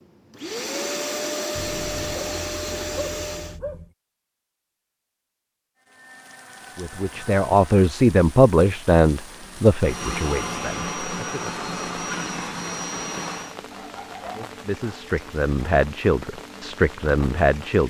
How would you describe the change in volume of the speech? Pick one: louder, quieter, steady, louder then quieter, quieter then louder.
quieter then louder.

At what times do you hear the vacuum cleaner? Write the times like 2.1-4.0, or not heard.
0.0-3.6, 9.3-13.6.